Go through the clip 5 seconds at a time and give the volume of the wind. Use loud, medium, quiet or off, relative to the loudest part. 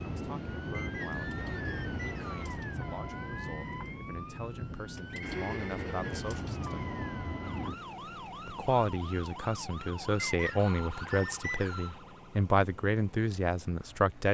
loud, loud, off.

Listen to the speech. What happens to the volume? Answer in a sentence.
The loudness of the speech goes up.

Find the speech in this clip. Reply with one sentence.
You can hear the speech from 0.0 to 6.8 s and from 8.4 to 14.2 s.